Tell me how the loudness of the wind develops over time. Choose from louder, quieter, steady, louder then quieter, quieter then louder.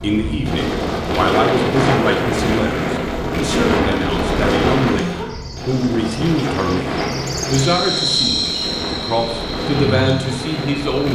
quieter.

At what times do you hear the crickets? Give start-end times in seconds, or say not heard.
5.2-11.1.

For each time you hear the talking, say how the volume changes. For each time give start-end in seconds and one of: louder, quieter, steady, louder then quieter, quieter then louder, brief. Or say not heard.
0.0-11.1 steady.